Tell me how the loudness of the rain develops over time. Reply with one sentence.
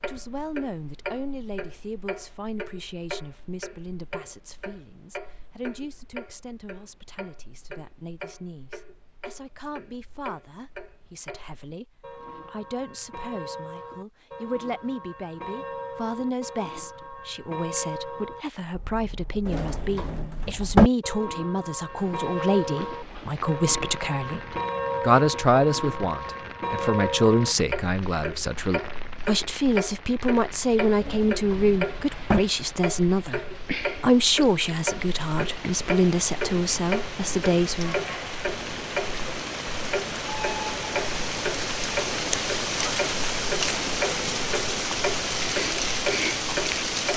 The volume of the rain goes up.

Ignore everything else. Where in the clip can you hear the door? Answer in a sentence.
You can hear the door from 19.4 to 20.9 s and from 30.9 to 32.4 s.